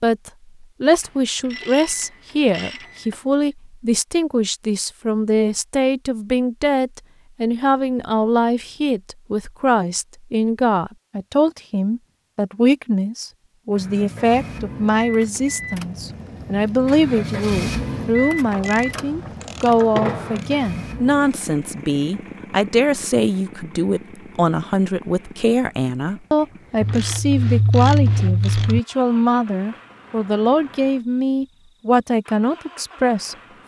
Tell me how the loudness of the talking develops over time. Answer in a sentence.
The loudness of the talking stays about the same.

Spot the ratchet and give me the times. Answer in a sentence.
The ratchet can be heard from 1.0 to 3.1 s, from 18.1 to 20.5 s and from 26.8 to 28.8 s.